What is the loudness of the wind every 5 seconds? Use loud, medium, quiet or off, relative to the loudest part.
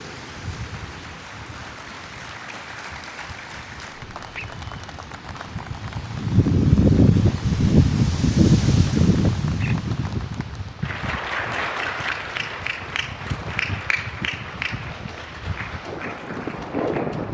quiet, loud, quiet, medium.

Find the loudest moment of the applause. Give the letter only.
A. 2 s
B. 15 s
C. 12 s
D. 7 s
C.